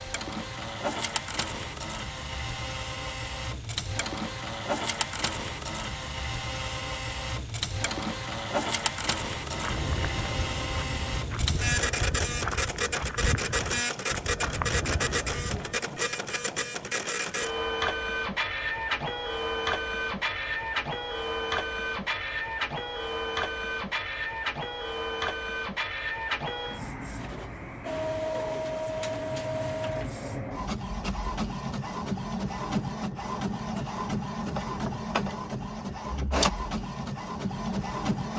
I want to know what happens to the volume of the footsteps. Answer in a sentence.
The loudness of the footsteps stays about the same.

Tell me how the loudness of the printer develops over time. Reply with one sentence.
The volume of the printer stays about the same.